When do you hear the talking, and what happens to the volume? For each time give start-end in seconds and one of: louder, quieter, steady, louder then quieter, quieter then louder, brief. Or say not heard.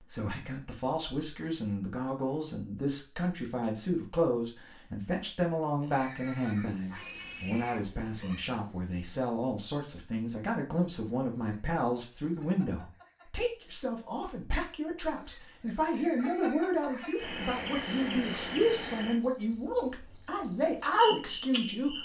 0.0-22.0 steady.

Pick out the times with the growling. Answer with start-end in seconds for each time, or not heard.
not heard.